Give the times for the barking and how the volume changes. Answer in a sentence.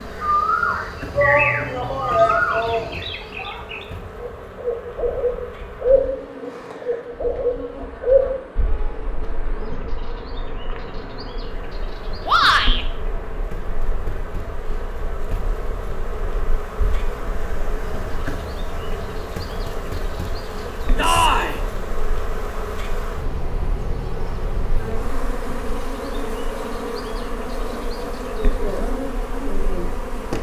You can't hear the barking here.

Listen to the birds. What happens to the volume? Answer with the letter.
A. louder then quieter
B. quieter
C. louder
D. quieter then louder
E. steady
B.